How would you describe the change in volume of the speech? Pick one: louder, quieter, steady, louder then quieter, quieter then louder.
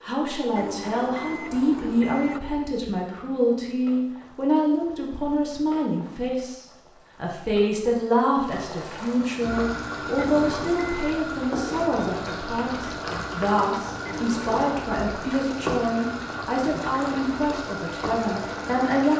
steady.